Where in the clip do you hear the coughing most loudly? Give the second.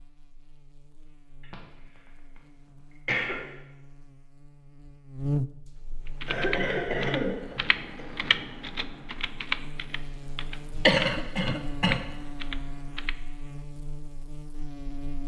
11 s.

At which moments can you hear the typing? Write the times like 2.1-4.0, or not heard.
6.0-13.2.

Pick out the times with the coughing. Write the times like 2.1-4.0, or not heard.
1.4-2.0, 2.8-3.5, 6.2-8.1, 10.8-12.0.